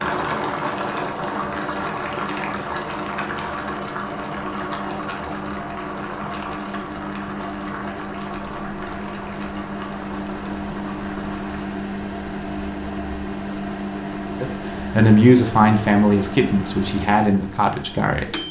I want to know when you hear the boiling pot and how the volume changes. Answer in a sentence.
The boiling pot can be heard from 0.0 to 11.7 s, getting quieter.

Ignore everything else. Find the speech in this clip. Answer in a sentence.
You can hear the speech from 14.4 to 18.4 s.